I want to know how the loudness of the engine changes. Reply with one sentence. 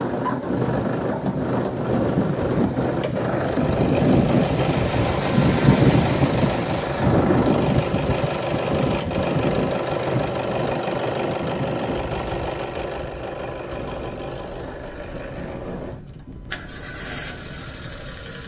The loudness of the engine goes down.